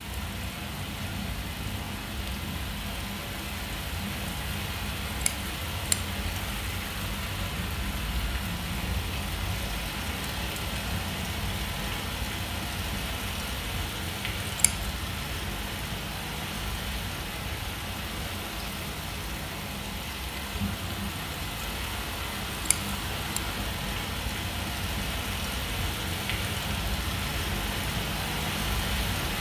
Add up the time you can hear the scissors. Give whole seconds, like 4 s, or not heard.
2 s.